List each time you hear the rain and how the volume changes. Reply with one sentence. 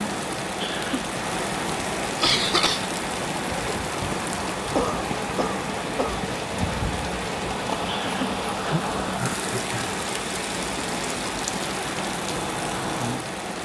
The rain can be heard from 0.0 to 13.6 s, at a steady volume.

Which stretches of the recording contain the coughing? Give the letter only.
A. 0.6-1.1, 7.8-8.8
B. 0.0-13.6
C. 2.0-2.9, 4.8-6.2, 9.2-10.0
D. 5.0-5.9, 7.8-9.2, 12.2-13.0
C.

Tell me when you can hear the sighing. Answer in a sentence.
You can hear the sighing from 0.6 to 1.1 s and from 7.8 to 8.8 s.